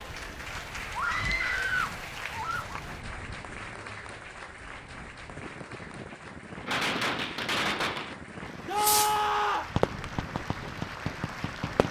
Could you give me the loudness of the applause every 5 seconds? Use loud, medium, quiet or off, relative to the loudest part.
loud, medium, loud.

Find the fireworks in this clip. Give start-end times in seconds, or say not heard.
6.7-11.8.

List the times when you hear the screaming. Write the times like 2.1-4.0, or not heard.
0.9-2.8, 8.7-9.7.